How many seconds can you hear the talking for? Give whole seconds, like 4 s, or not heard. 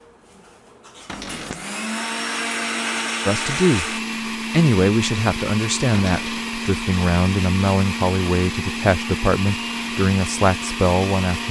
8 s.